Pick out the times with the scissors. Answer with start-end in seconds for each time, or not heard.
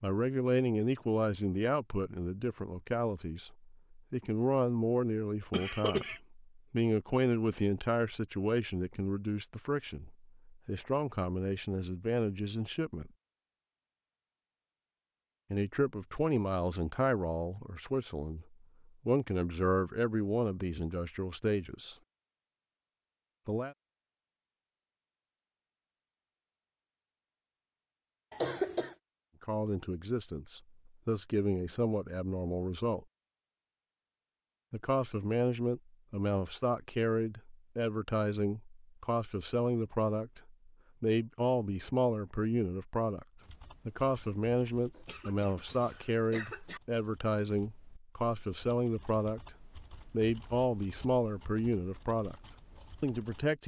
not heard.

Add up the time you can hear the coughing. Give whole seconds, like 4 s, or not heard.
3 s.